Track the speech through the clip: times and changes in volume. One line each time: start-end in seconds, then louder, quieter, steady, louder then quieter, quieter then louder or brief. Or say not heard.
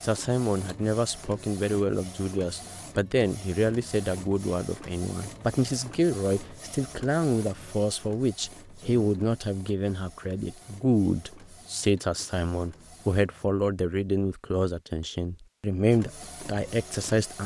0.0-17.4 steady.